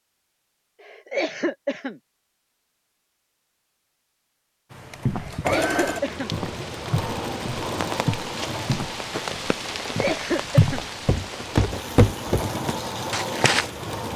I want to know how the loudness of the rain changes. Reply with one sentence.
The volume of the rain goes up, then down.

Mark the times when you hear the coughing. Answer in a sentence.
The coughing can be heard from 0.8 to 2.0 s, from 5.2 to 6.3 s and from 9.8 to 10.8 s.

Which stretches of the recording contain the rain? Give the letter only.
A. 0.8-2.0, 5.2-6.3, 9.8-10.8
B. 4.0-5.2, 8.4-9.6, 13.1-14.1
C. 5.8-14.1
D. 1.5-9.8
C.